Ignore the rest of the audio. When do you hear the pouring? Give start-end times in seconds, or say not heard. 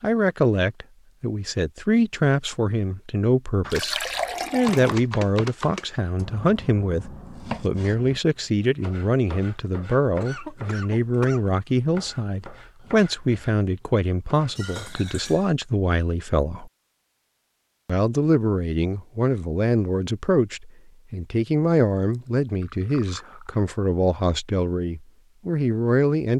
3.7-5.0, 14.6-15.6, 22.1-23.4.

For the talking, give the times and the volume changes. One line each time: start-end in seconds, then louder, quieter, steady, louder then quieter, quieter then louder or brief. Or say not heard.
0.0-16.7 steady
17.9-26.3 steady.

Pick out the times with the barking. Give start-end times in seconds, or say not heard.
not heard.